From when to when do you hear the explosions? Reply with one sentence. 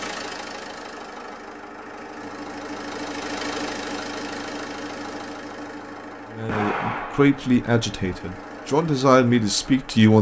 The explosions can be heard from 6.5 to 7.5 s.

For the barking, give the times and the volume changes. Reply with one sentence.
The barking can't be heard in this clip.